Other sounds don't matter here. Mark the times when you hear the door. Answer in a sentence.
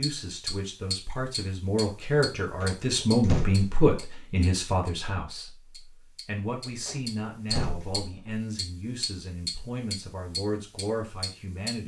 The door can be heard from 2.4 to 3.9 s and from 6.7 to 8.4 s.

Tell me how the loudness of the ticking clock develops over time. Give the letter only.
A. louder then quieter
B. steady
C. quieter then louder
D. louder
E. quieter
C.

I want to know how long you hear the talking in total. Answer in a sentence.
The talking can be heard for 12 seconds in total.